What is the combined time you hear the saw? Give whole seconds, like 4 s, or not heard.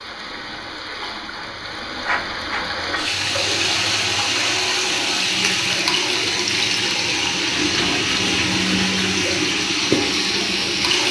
3 s.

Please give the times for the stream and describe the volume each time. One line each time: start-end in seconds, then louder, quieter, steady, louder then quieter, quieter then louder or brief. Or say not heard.
0.0-11.0 louder.